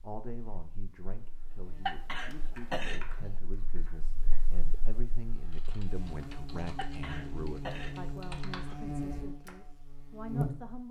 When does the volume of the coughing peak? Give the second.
2 s.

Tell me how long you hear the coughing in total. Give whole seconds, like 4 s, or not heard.
3 s.